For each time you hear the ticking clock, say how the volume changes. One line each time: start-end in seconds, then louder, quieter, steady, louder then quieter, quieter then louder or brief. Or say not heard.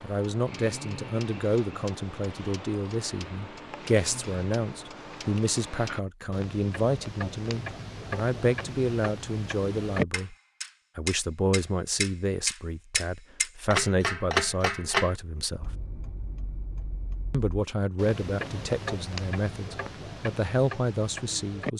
0.0-21.7 louder then quieter.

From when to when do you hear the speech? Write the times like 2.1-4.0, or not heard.
0.0-10.3, 10.9-15.8, 17.3-21.7.